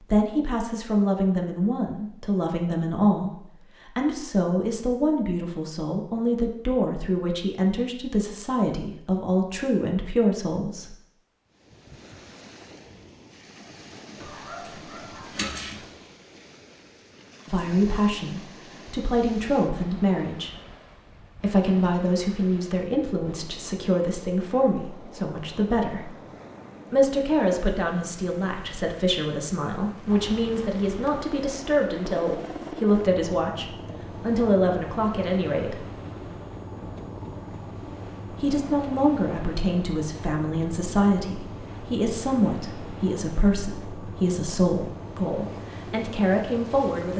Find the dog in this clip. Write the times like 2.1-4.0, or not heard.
14.2-15.8.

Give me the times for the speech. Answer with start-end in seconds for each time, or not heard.
0.0-10.9, 17.4-20.5, 21.4-26.1, 26.9-35.9, 38.3-47.1.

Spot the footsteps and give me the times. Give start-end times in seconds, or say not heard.
not heard.